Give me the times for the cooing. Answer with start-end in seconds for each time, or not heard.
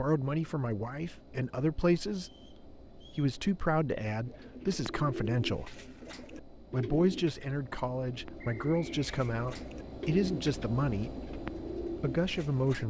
4.2-12.8.